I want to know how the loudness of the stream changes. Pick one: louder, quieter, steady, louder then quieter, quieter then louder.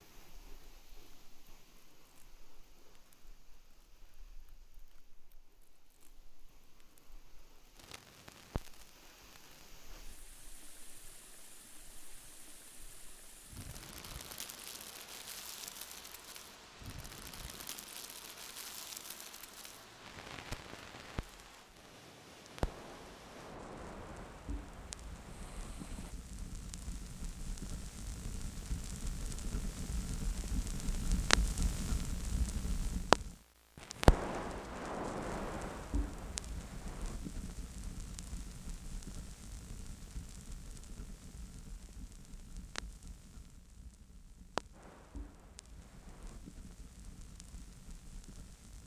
louder.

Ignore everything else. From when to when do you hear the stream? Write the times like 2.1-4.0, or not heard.
0.0-26.1.